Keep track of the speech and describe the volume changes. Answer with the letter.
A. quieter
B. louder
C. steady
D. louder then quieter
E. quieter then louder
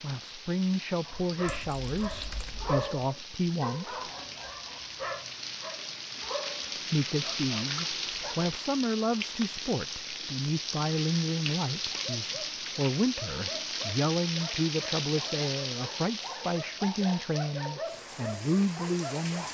C.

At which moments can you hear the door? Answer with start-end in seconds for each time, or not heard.
not heard.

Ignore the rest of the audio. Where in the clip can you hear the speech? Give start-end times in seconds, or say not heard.
0.0-4.0, 6.9-19.4.